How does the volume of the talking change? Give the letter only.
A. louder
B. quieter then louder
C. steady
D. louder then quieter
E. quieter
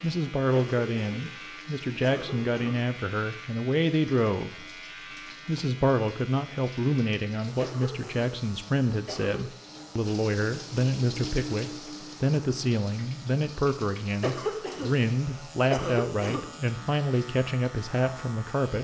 C.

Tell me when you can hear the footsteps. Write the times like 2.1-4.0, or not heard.
not heard.